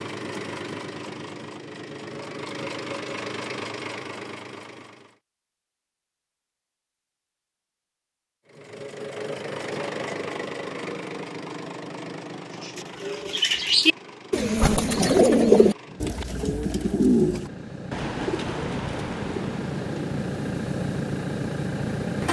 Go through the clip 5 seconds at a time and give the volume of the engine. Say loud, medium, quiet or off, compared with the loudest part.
medium, medium, medium, medium, loud.